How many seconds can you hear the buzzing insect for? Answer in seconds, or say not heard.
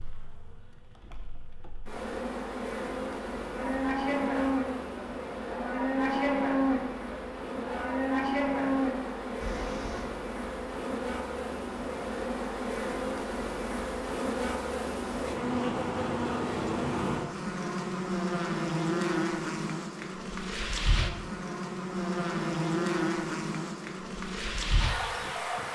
26 s.